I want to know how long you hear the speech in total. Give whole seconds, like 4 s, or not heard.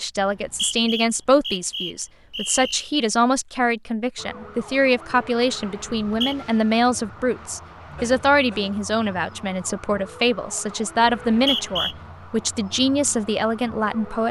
14 s.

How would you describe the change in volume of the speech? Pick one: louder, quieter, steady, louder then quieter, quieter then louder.
steady.